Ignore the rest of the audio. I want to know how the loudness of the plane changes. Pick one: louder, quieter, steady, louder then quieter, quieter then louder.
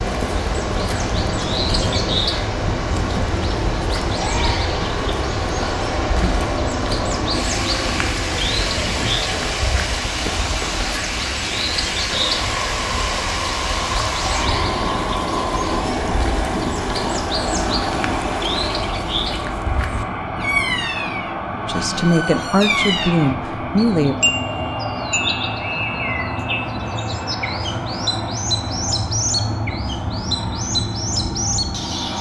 steady.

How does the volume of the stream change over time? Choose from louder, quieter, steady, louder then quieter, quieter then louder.
steady.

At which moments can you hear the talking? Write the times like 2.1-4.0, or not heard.
21.6-24.1.